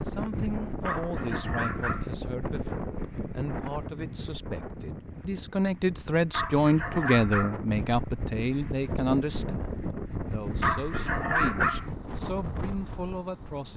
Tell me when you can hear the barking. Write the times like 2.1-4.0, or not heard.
0.8-2.1, 6.3-7.6, 10.6-11.8.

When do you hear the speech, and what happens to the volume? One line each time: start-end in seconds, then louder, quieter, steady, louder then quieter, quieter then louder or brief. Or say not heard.
0.0-13.7 louder then quieter.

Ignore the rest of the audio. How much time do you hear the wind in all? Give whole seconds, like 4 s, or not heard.
14 s.